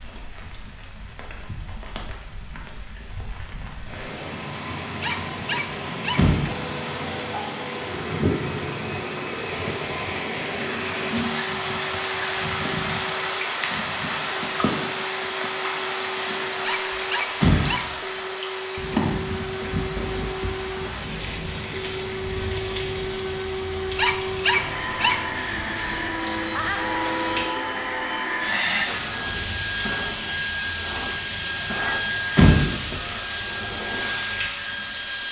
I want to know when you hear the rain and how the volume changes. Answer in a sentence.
The rain can be heard from 0.0 to 35.2 s, getting louder then quieter.